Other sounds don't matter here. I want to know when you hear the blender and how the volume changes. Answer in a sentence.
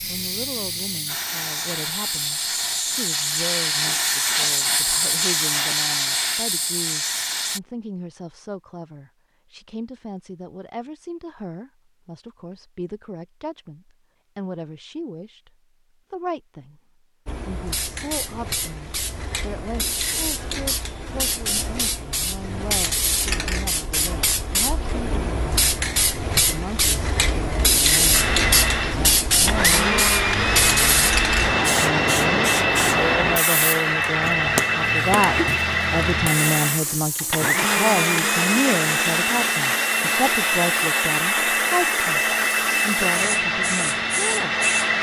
You can hear the blender from 28.1 to 44.9 s, at a steady volume.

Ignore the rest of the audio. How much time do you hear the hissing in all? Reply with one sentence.
You can hear the hissing for 35 seconds altogether.